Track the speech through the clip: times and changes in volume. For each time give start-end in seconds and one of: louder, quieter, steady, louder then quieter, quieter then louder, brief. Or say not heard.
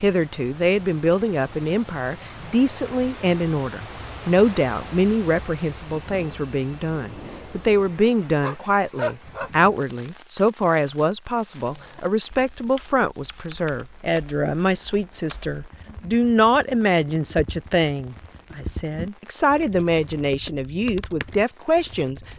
0.0-22.2 steady.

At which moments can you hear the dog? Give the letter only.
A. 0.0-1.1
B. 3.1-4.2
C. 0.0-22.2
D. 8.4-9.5
D.